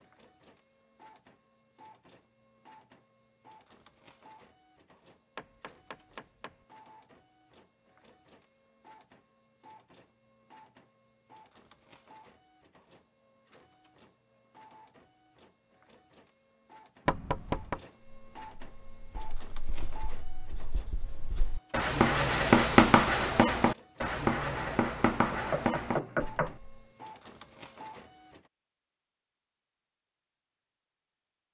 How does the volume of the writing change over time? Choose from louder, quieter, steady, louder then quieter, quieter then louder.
louder then quieter.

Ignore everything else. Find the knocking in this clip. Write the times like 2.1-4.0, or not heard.
5.3-6.5, 17.1-17.8, 25.3-26.6.